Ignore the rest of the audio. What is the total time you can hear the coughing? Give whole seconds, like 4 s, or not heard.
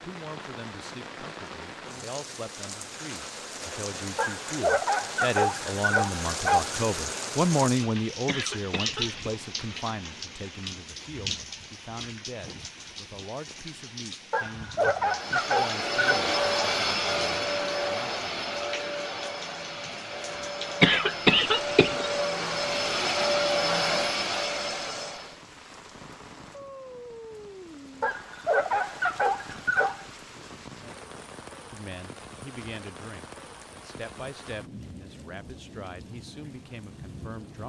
2 s.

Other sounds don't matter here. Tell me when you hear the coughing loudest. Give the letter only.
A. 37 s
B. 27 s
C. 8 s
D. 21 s
D.